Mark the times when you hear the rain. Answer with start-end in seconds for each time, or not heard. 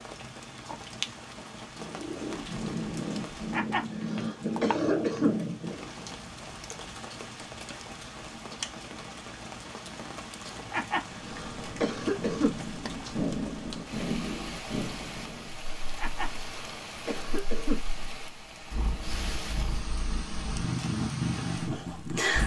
0.0-22.4.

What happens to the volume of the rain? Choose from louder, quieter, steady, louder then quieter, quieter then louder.
steady.